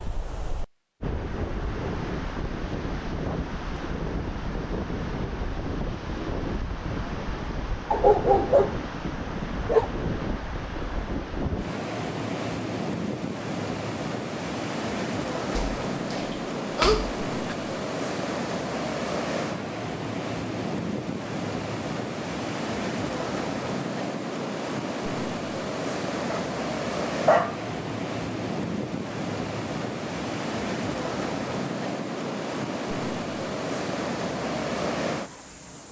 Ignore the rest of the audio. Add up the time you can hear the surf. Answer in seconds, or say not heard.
36 s.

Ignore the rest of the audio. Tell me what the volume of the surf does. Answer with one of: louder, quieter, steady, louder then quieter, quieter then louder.
steady.